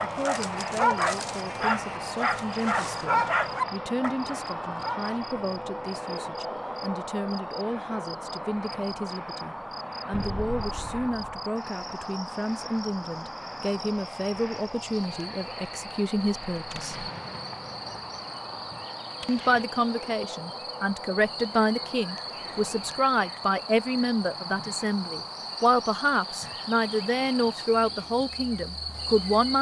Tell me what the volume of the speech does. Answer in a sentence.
The loudness of the speech goes up.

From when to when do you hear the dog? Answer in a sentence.
You can hear the dog from 0.0 to 5.2 s.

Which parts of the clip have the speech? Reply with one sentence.
You can hear the speech from 0.0 to 17.1 s and from 19.2 to 29.5 s.